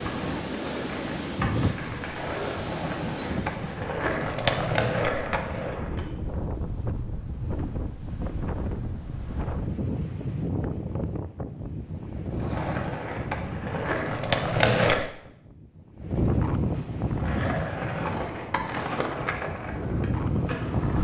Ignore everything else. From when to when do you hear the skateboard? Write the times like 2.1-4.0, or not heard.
0.0-6.2, 12.2-15.1, 17.0-20.9.